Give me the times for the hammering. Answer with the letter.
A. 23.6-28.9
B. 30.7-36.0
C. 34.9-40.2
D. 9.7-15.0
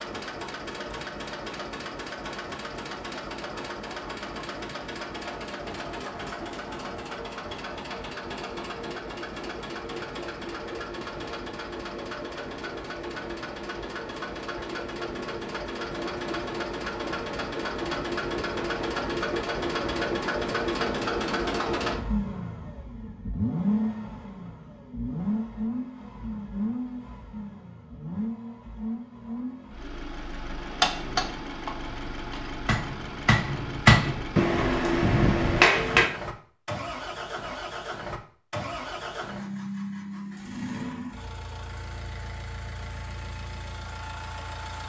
B.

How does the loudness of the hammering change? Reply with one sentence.
The volume of the hammering goes up.